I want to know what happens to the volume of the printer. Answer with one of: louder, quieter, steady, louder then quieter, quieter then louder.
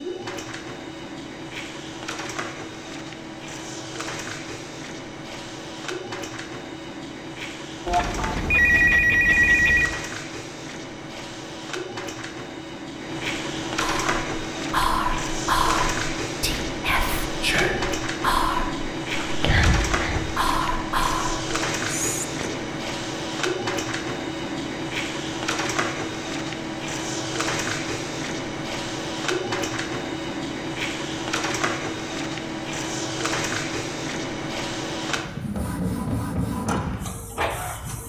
louder.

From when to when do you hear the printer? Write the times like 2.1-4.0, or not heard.
0.0-38.0.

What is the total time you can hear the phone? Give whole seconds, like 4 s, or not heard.
2 s.